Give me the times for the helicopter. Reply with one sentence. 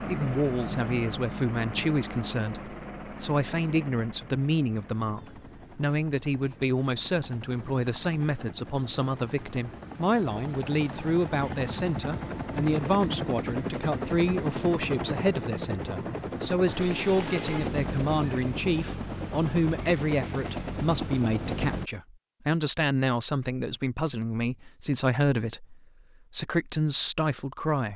You can hear the helicopter from 0.0 to 21.9 s.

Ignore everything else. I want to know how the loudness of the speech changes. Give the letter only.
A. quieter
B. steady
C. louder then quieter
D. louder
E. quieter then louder
B.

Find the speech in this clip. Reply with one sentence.
You can hear the speech from 0.1 to 27.9 s.